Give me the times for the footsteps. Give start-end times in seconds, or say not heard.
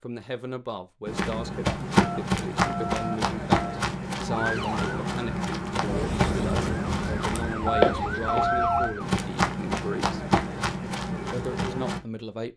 1.1-12.0.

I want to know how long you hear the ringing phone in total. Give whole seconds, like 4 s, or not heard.
3 s.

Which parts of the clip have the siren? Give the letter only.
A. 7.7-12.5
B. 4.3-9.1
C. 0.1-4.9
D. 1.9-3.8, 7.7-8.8
B.